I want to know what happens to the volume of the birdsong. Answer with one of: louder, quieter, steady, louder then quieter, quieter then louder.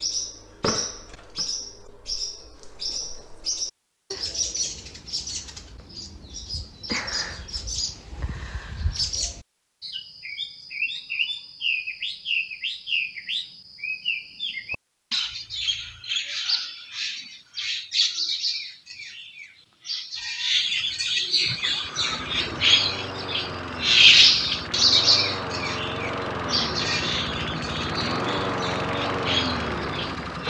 louder.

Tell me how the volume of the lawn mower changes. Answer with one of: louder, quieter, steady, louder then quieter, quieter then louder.
louder.